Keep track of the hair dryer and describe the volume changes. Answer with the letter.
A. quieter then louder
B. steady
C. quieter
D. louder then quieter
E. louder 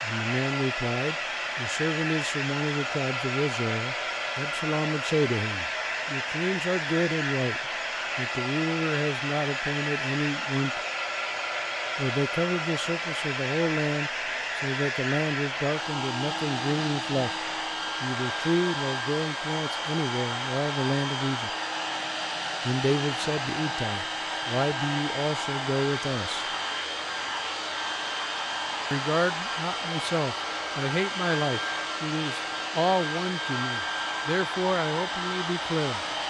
B.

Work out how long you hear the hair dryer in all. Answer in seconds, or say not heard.
36 s.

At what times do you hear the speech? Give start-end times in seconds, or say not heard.
0.0-10.8, 11.9-17.3, 18.0-21.5, 22.6-26.4, 28.9-36.0.